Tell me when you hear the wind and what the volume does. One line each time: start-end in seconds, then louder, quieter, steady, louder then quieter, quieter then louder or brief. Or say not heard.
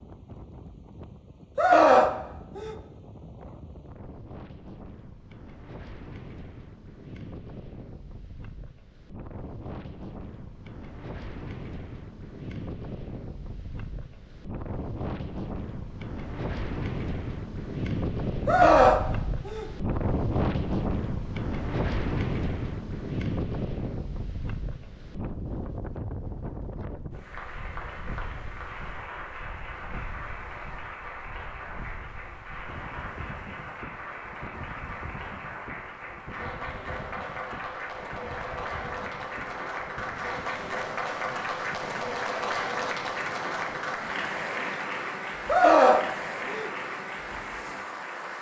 0.0-48.3 louder then quieter.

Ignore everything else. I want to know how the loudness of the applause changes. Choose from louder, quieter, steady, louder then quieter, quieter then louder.
louder.